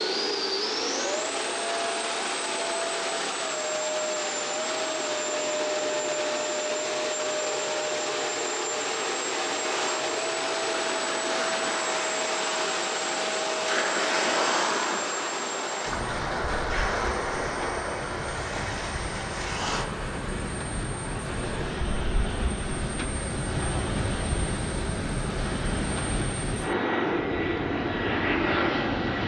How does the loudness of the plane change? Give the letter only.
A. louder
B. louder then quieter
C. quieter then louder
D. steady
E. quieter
C.